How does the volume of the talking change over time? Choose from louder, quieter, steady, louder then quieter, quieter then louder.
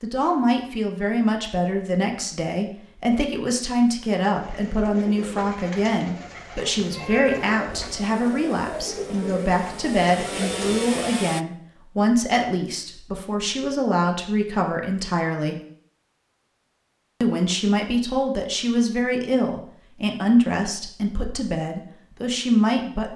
steady.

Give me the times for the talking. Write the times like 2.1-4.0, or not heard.
0.0-15.6, 17.2-23.1.